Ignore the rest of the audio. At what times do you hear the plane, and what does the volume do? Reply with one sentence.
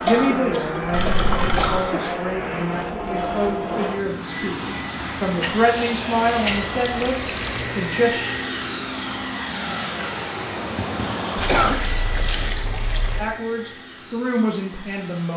You can hear the plane from 0.0 to 15.3 s, getting quieter.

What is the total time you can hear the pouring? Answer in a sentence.
The pouring can be heard for 4 seconds in total.